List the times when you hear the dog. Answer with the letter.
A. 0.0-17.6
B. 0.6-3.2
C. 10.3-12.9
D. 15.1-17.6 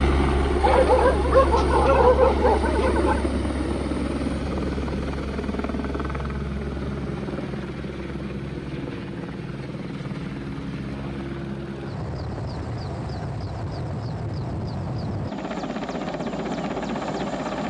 B.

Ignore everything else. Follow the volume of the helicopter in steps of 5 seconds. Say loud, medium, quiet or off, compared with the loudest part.
loud, medium, medium, loud.